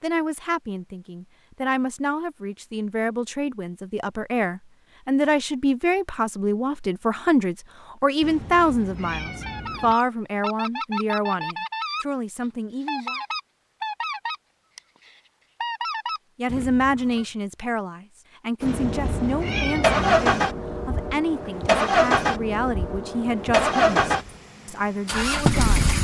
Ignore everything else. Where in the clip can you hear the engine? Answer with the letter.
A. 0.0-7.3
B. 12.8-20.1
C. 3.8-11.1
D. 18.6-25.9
D.